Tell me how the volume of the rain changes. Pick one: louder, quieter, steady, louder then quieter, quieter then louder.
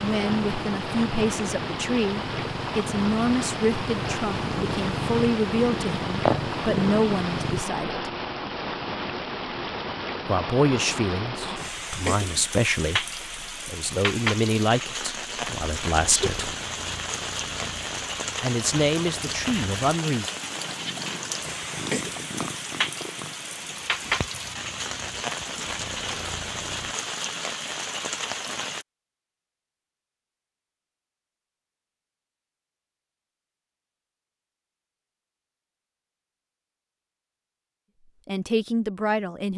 steady.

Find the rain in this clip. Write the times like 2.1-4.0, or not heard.
0.0-28.9.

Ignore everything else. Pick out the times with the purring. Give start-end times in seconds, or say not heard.
0.0-7.7, 15.4-26.9.